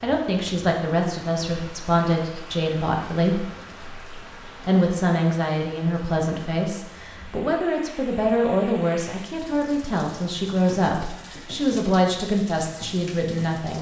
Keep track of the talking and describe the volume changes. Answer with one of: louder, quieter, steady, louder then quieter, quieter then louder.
steady.